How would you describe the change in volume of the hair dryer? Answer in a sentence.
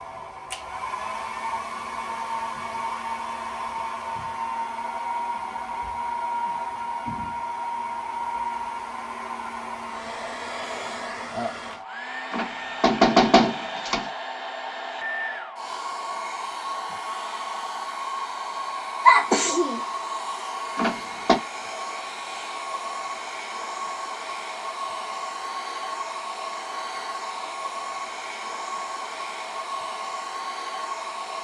The loudness of the hair dryer stays about the same.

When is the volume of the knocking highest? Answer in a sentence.
The volume of the knocking peaks at 13 seconds.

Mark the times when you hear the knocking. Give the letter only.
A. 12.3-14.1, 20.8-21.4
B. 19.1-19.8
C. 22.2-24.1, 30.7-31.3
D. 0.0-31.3
A.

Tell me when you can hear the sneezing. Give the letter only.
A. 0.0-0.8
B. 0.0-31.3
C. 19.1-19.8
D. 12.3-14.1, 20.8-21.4
C.